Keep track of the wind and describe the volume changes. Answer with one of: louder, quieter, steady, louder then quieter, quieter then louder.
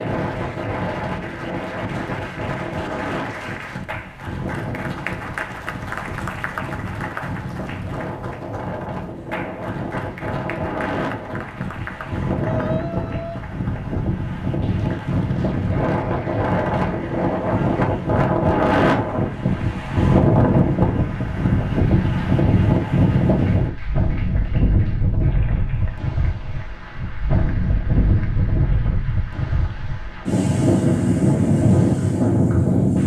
louder.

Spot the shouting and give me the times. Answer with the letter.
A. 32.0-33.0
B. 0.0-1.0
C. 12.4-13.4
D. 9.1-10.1
C.